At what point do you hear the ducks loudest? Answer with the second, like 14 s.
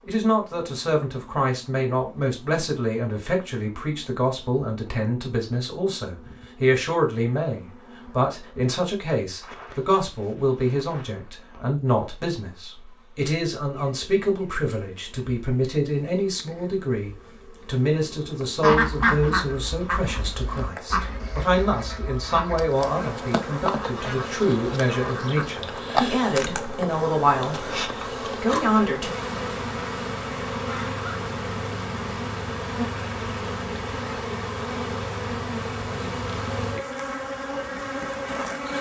19 s.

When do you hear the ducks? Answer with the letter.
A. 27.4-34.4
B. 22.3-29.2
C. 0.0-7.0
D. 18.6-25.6
D.